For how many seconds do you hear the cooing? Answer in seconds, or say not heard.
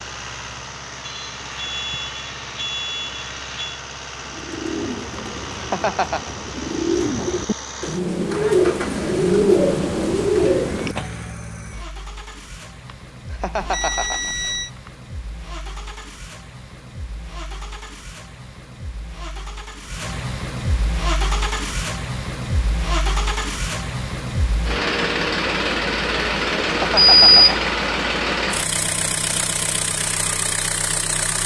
7 s.